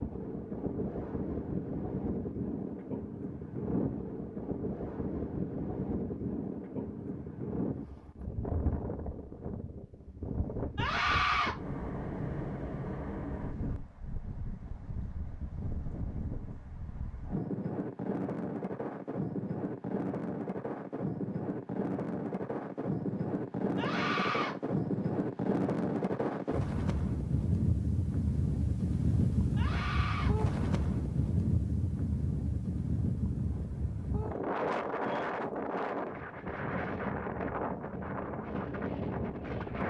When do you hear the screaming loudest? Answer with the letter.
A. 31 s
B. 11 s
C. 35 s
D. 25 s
B.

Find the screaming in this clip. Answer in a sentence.
The screaming can be heard from 10.8 to 11.6 s, from 23.8 to 24.6 s and from 29.6 to 30.4 s.